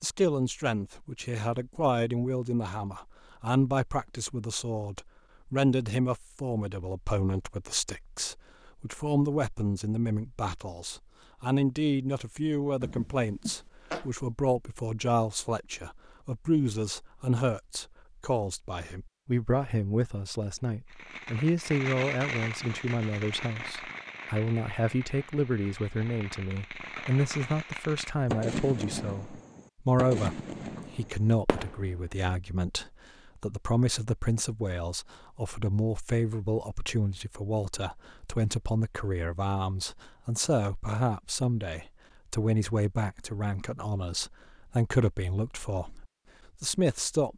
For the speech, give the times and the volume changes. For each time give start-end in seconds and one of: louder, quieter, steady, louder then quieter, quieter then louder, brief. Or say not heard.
0.0-47.3 steady.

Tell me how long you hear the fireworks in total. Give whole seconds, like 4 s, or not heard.
11 s.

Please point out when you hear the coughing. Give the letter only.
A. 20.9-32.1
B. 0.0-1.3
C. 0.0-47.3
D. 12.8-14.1
D.